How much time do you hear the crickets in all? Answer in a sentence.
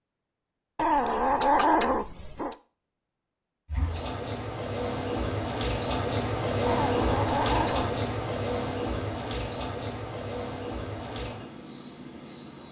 You can hear the crickets for 9 seconds altogether.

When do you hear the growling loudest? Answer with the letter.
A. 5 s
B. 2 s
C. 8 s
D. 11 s
B.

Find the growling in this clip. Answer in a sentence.
You can hear the growling from 0.8 to 2.5 s and from 6.7 to 8.0 s.